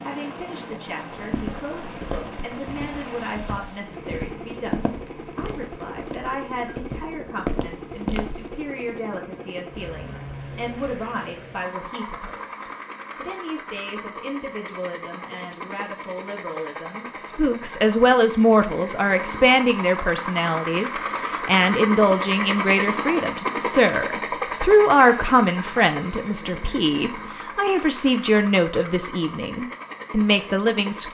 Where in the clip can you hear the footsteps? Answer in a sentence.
You can hear the footsteps from 1.1 to 8.7 s.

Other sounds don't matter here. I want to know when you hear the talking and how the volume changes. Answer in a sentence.
You can hear the talking from 0.0 to 31.0 s, getting louder.